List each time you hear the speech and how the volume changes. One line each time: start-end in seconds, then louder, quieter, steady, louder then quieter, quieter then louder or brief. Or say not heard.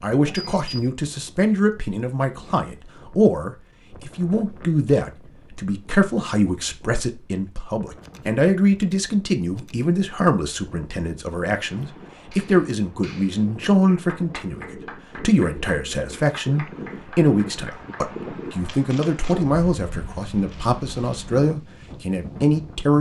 0.0-22.9 steady.